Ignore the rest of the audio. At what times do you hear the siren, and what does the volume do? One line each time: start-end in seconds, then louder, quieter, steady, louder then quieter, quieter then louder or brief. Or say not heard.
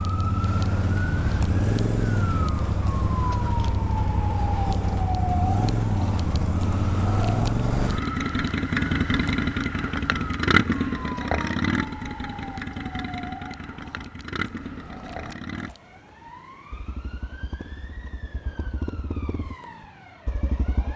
0.0-20.9 quieter.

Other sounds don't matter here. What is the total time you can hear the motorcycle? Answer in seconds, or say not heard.
21 s.